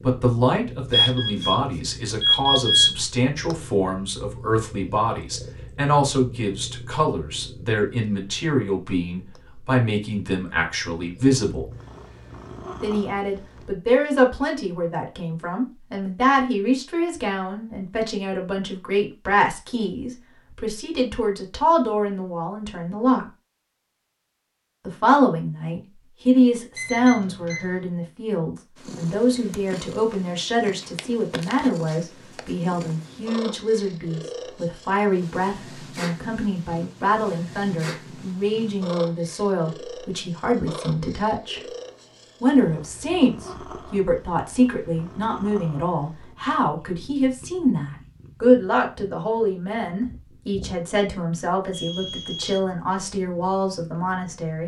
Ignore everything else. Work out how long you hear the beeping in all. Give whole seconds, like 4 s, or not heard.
4 s.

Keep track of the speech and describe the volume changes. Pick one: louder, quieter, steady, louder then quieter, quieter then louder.
steady.